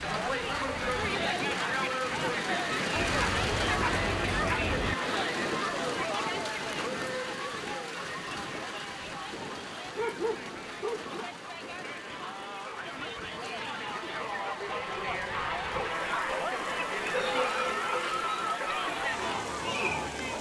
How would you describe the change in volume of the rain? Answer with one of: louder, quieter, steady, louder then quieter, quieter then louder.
quieter.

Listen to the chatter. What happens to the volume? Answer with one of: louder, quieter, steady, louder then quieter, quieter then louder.
quieter then louder.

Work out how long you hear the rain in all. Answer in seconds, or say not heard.
20 s.